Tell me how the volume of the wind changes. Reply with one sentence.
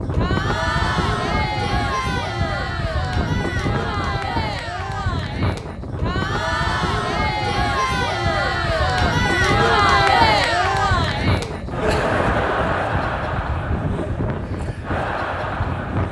The volume of the wind stays about the same.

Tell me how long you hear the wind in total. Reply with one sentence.
You can hear the wind for 16 seconds altogether.